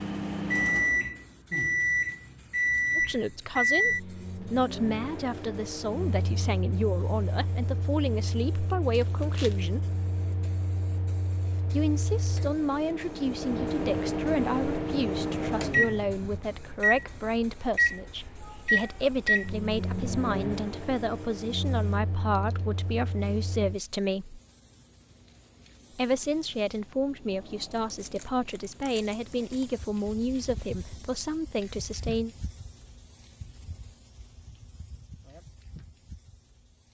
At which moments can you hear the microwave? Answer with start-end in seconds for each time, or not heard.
0.0-23.8.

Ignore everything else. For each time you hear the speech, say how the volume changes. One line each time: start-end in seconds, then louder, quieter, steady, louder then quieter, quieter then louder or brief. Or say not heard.
3.0-9.9 steady
11.7-24.4 steady
25.9-32.3 steady.